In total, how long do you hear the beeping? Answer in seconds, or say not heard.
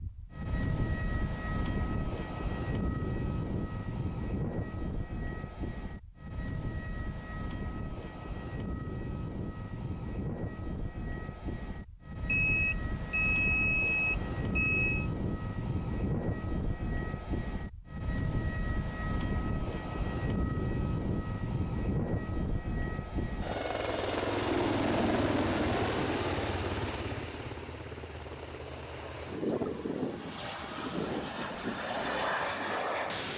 3 s.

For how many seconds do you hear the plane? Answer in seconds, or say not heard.
33 s.